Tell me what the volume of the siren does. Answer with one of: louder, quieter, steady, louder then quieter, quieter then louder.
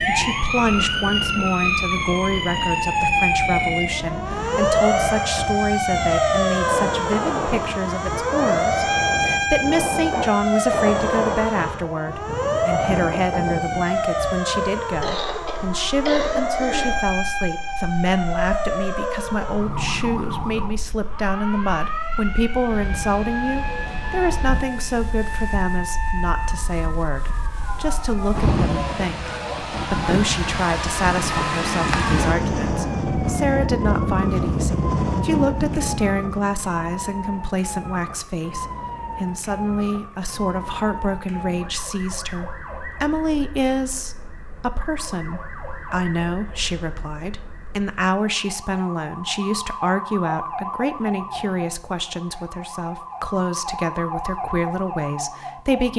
quieter.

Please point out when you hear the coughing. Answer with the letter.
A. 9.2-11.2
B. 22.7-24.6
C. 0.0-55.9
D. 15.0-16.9
D.